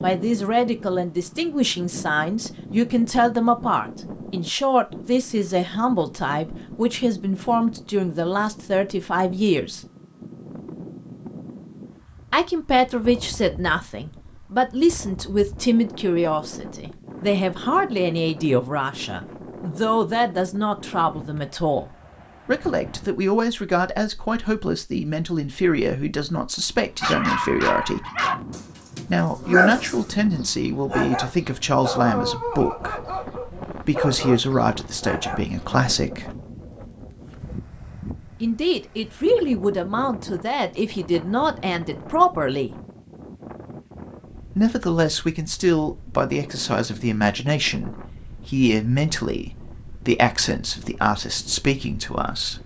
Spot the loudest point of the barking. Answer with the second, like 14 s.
30 s.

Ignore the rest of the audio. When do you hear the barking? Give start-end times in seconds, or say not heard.
27.0-35.6.